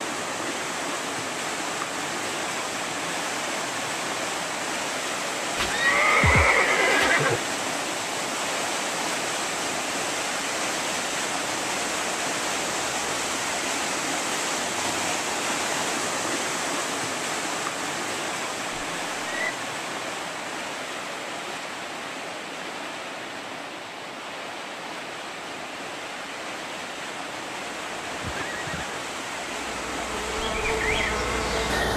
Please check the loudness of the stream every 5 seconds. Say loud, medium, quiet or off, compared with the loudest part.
loud, loud, loud, loud, medium, medium, loud.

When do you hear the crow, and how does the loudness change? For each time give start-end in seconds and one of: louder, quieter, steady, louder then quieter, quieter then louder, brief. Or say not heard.
not heard.